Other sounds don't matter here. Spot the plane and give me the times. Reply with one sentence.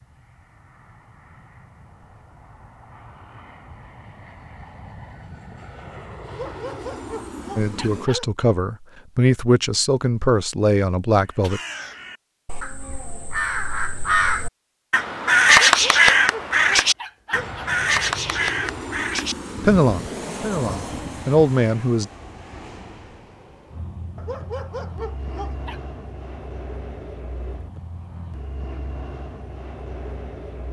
You can hear the plane from 0.0 to 8.1 s and from 17.3 to 30.6 s.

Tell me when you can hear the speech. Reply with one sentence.
The speech can be heard from 7.5 to 11.6 s and from 19.6 to 22.1 s.